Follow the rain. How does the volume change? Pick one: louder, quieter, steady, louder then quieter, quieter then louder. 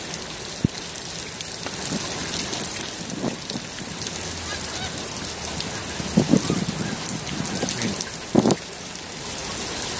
steady.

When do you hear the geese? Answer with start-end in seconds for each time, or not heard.
1.6-8.6.